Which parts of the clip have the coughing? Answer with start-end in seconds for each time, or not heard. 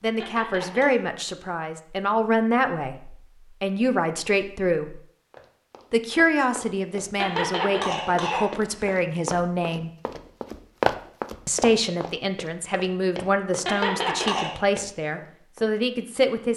0.2-0.9, 7.2-9.0, 13.7-14.6.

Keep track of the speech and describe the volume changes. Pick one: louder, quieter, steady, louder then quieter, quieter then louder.
steady.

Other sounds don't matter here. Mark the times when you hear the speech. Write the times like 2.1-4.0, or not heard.
0.0-5.0, 5.9-9.9, 11.4-16.5.